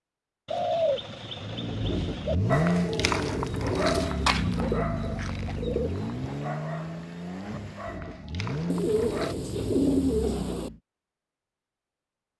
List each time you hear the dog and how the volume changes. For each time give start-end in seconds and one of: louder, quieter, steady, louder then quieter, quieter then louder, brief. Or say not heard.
2.5-9.3 quieter.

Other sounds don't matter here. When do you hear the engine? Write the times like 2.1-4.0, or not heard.
1.4-10.8.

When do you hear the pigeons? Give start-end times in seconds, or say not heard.
0.5-2.4, 4.5-6.0, 8.7-10.7.